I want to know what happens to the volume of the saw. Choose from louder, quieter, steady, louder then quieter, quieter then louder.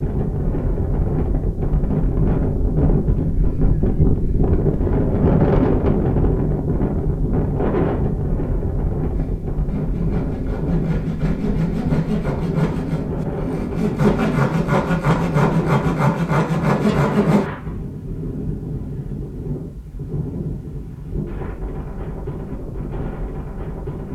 louder.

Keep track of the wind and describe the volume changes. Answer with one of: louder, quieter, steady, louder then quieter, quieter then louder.
quieter.